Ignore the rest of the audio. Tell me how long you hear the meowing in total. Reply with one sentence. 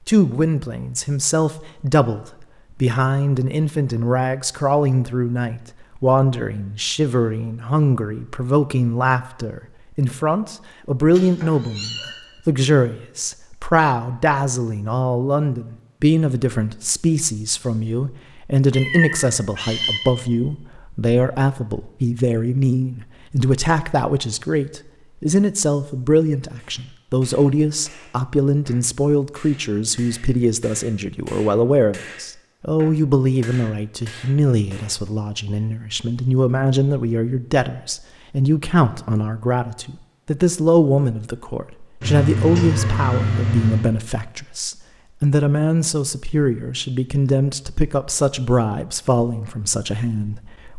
The meowing can be heard for 4 seconds in total.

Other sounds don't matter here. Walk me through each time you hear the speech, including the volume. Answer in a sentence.
The speech can be heard from 0.1 to 50.7 s, at a steady volume.